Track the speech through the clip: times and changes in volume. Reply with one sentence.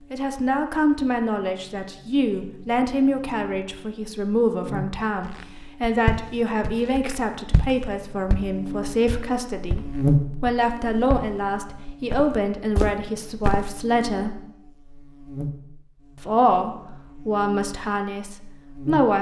The speech can be heard from 0.1 to 14.4 s, at a steady volume; and briefly from 16.1 to 19.1 s.